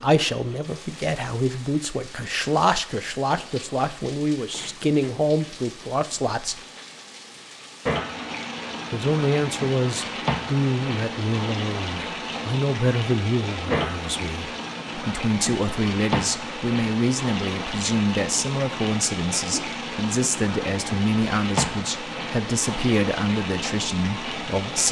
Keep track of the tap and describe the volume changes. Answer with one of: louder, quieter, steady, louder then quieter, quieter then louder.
louder.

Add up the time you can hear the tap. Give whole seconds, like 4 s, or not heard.
25 s.